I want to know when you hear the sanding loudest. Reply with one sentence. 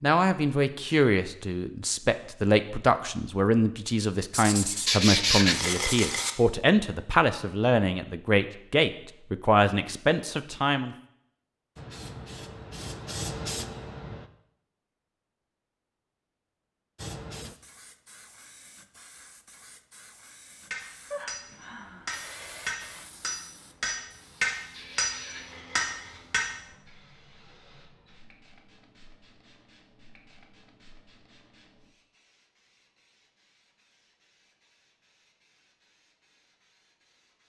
The volume of the sanding peaks at 5 seconds.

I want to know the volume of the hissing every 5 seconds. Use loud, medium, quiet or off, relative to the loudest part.
off, off, loud, medium, medium, quiet, quiet, quiet.